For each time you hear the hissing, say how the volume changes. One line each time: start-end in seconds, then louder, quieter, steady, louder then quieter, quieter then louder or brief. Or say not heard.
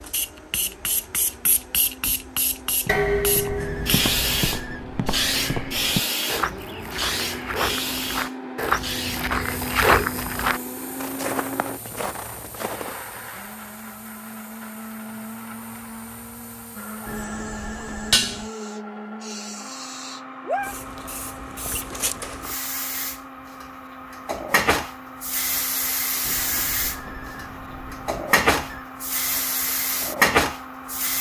0.0-31.1 quieter then louder.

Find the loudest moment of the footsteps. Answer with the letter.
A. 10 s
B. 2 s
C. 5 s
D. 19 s
A.